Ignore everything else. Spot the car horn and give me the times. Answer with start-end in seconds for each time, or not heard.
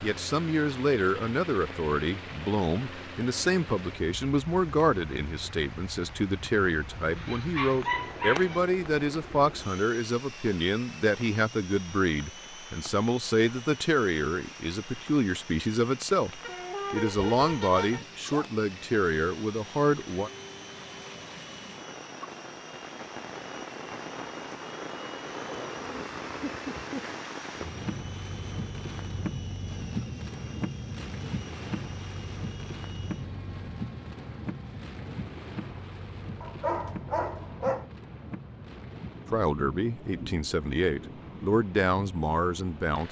16.4-18.1.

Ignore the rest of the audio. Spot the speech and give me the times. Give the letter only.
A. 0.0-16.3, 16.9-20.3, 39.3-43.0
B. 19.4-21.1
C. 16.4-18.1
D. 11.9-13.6
A.